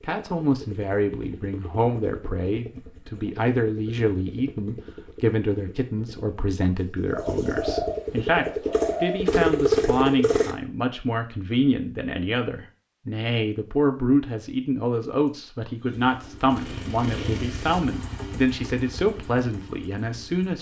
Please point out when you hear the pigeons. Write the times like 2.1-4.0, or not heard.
7.1-9.3.